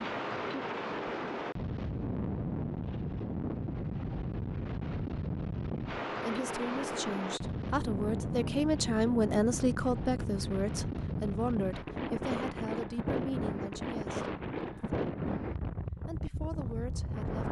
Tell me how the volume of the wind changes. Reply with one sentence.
The volume of the wind stays about the same.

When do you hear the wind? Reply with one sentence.
You can hear the wind from 0.0 to 17.4 s.